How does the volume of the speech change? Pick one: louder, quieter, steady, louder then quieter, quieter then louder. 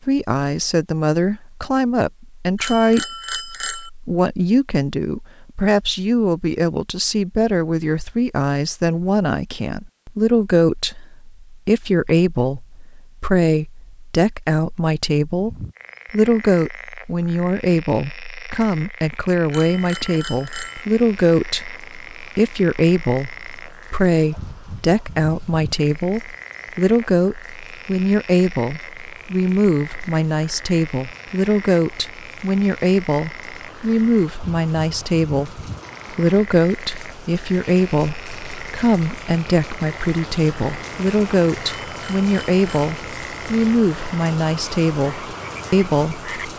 steady.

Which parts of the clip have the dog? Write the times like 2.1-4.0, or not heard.
not heard.